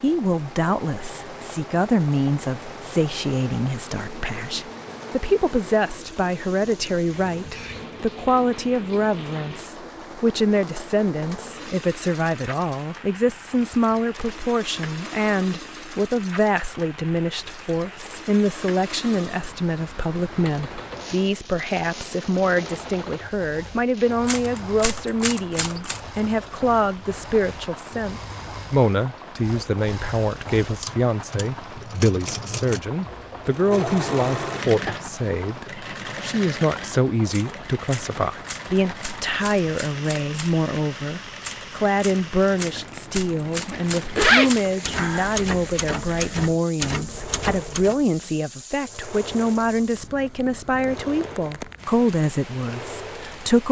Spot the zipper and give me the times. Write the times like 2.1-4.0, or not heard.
43.7-45.8.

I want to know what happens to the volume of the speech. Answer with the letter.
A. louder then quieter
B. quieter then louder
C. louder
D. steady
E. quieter
D.